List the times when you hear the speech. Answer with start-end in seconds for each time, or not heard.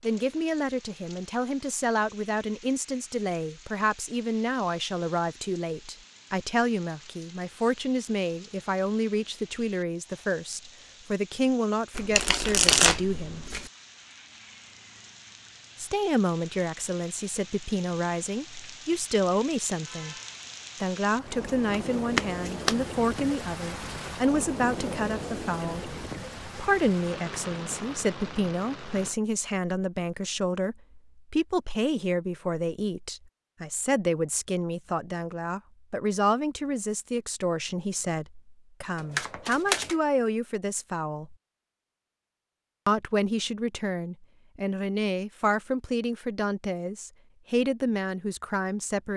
0.0-13.4, 15.8-20.1, 20.8-41.4, 42.9-49.1.